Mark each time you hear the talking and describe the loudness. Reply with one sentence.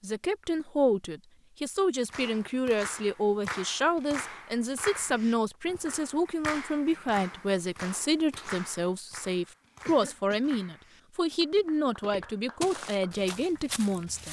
You can hear the talking from 0.0 to 14.2 s, at a steady volume.